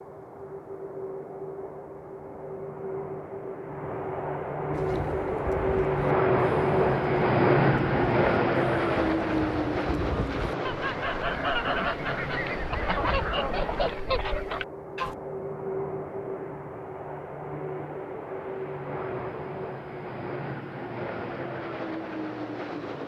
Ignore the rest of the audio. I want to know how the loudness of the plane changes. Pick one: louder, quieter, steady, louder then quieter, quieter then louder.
louder then quieter.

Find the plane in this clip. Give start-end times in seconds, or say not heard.
0.0-23.0.